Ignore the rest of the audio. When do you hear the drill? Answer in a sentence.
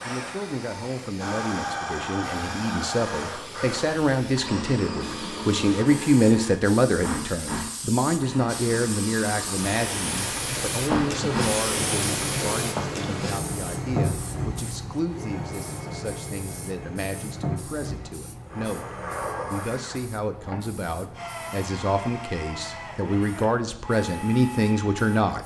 The drill can be heard from 0.0 to 25.4 s.